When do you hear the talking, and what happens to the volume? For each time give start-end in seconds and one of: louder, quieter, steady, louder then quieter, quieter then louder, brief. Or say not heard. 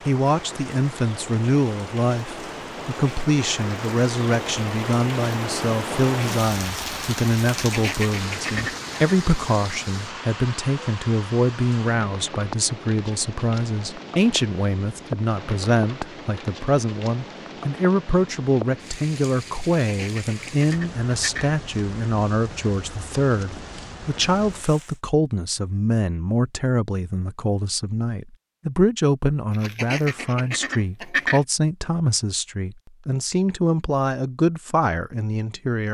0.1-35.8 steady.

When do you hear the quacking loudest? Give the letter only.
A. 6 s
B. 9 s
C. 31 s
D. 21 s
C.